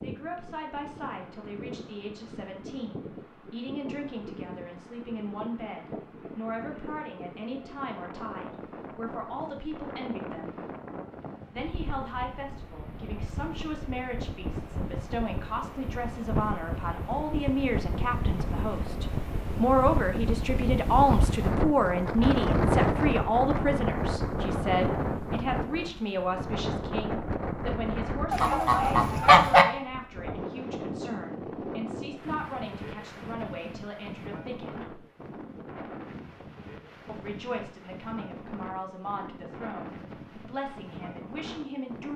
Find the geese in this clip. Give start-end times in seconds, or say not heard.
28.3-29.6.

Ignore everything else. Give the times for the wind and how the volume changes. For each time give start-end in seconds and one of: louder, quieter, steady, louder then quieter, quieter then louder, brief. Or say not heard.
0.0-42.1 louder then quieter.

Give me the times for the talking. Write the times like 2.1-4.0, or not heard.
0.0-10.7, 11.5-35.0, 37.0-42.1.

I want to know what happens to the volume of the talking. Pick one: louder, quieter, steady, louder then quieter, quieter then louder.
louder then quieter.